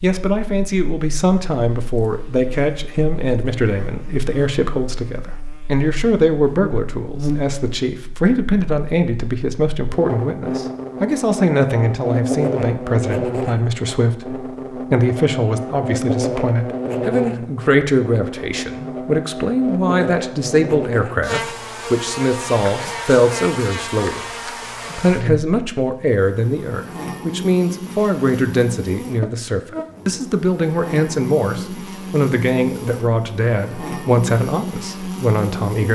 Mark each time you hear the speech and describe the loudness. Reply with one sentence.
You can hear the speech from 0.0 to 24.2 s, at a steady volume; and from 24.9 to 35.8 s, at a steady volume.